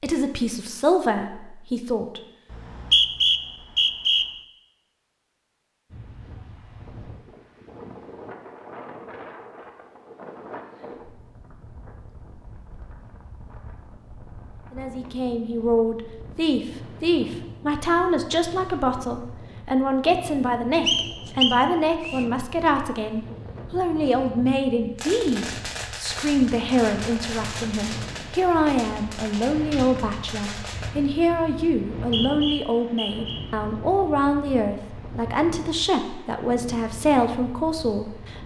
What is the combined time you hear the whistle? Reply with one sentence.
You can hear the whistle for 5 seconds altogether.